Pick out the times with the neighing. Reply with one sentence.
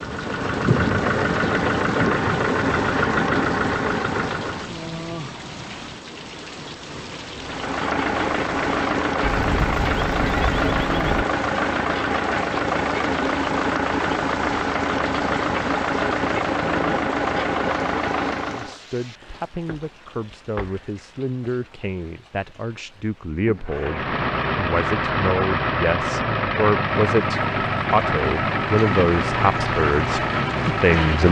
You can hear the neighing from 9.2 to 11.2 s.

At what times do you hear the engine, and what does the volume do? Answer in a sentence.
The engine can be heard from 0.0 to 4.8 s, at a steady volume; from 7.4 to 18.8 s, at a steady volume; and from 23.6 to 31.2 s, at a steady volume.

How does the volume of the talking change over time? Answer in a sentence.
The loudness of the talking goes up.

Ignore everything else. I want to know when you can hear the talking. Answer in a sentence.
You can hear the talking from 18.4 to 31.2 s.